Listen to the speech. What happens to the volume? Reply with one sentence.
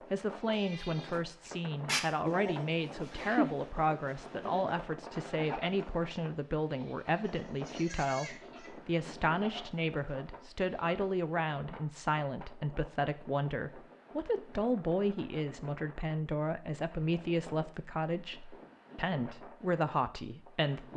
The loudness of the speech stays about the same.